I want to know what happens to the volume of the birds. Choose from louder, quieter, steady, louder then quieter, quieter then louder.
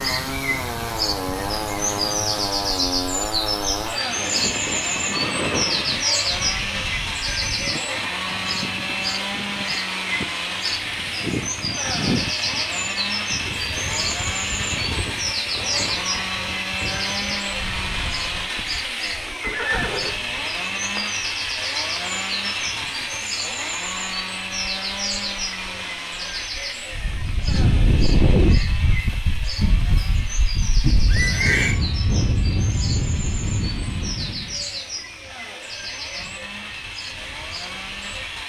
quieter.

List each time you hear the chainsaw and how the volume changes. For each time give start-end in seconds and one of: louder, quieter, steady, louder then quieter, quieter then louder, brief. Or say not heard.
0.0-38.4 quieter.